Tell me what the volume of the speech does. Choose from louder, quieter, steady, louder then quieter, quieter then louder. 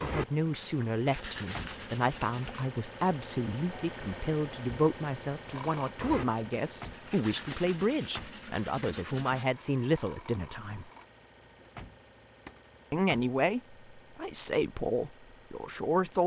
steady.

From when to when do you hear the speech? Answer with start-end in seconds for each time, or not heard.
0.0-10.9, 12.9-16.2.